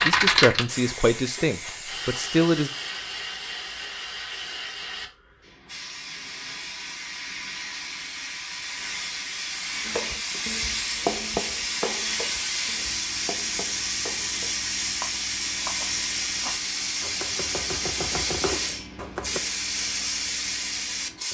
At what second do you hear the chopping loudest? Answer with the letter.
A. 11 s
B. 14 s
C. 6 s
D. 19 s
A.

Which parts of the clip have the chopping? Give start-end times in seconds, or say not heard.
9.8-19.4.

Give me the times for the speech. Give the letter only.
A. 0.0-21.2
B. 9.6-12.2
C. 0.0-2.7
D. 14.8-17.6
C.